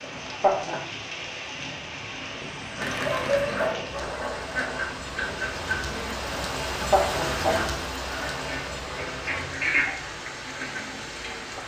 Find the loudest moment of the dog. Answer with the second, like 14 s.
3 s.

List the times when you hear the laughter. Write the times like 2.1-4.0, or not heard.
0.1-0.8, 6.8-7.5.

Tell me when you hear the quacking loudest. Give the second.
10 s.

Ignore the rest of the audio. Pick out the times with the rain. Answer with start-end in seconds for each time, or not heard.
0.0-11.6.